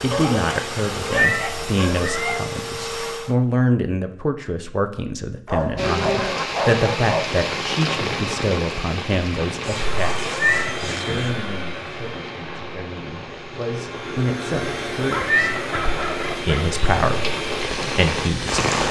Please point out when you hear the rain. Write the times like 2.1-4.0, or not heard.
5.8-18.8.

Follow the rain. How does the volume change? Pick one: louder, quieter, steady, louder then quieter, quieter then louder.
quieter then louder.